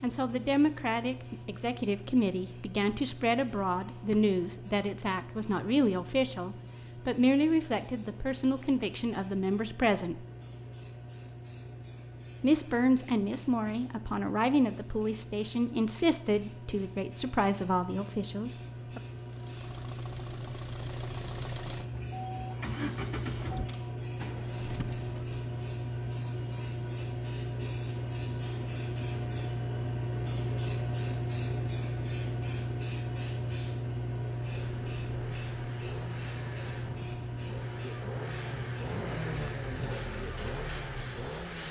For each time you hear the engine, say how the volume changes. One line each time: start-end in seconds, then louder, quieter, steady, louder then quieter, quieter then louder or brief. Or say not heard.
19.1-25.4 louder then quieter
34.1-41.6 louder.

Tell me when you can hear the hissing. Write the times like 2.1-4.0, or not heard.
0.0-41.6.